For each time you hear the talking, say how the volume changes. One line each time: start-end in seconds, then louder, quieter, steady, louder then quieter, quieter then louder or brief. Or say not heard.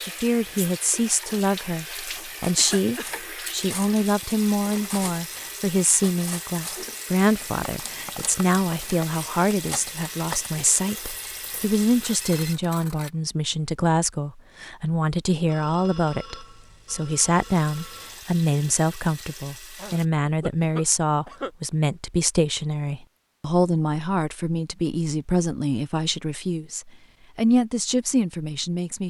0.0-29.0 steady.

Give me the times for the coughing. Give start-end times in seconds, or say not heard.
2.5-3.1, 19.8-21.5.